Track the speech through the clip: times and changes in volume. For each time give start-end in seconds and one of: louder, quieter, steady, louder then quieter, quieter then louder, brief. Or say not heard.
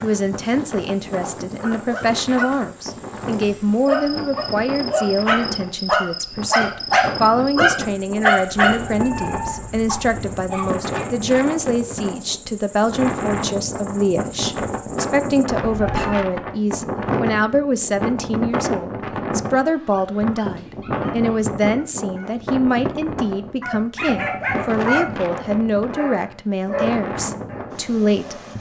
0.0-28.4 steady.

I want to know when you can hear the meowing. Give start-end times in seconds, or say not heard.
8.8-10.5, 15.4-16.2.